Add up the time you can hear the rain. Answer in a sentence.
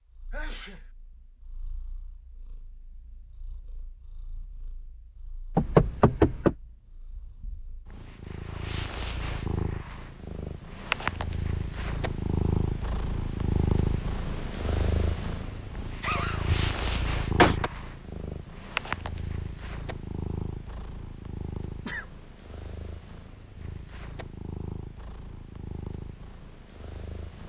You can't hear the rain here.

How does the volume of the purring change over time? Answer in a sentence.
The loudness of the purring goes up, then down.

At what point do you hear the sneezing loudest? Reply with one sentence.
The volume of the sneezing peaks at 16 seconds.